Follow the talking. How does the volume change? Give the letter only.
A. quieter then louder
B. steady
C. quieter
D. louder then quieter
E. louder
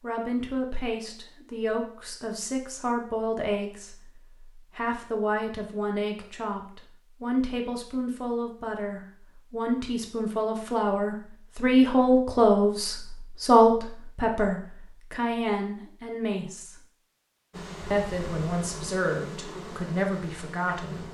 D.